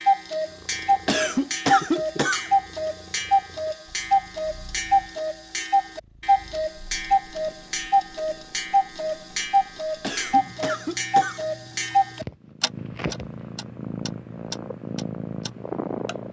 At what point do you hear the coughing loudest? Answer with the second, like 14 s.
2 s.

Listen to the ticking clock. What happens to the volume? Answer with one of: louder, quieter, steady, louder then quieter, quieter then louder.
quieter.